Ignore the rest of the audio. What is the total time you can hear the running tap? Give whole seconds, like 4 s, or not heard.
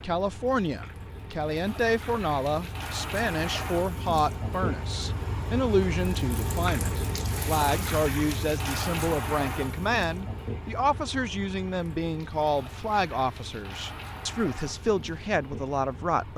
16 s.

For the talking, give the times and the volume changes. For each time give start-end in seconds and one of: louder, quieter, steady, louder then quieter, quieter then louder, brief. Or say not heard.
0.0-16.3 steady.